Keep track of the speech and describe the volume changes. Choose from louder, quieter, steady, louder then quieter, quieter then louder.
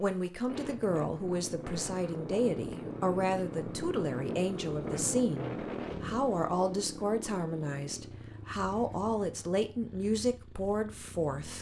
steady.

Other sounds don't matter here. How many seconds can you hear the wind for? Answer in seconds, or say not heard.
6 s.